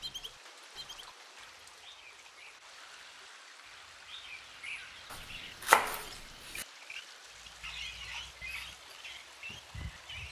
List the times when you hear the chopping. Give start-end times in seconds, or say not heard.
5.1-6.7.